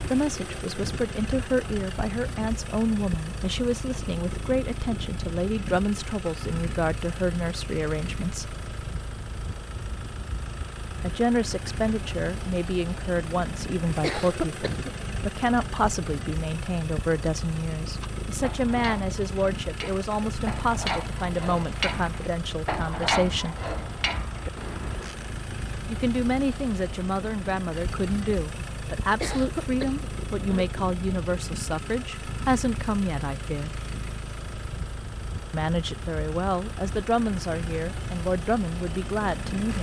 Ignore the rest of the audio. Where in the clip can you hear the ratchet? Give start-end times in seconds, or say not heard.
18.0-25.4.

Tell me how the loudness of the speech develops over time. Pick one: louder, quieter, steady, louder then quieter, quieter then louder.
steady.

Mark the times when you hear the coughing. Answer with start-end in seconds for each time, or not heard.
14.0-14.9, 29.2-30.6.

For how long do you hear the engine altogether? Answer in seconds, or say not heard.
40 s.